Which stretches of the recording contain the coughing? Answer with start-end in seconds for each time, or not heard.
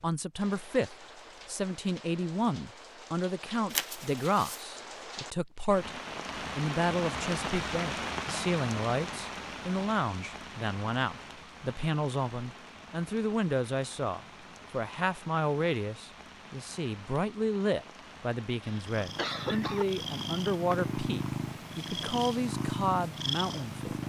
18.6-19.9.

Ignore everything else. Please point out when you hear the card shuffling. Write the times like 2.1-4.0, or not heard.
3.7-4.7.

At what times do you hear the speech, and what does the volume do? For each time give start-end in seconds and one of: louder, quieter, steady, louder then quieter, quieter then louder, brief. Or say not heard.
0.0-23.9 steady.